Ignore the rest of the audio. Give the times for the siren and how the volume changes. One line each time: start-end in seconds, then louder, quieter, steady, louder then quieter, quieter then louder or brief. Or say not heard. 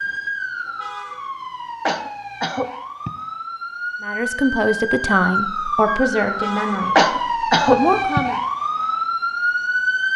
0.0-10.1 louder.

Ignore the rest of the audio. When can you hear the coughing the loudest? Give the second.
7 s.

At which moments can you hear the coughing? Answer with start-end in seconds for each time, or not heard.
1.9-3.1, 7.0-8.2.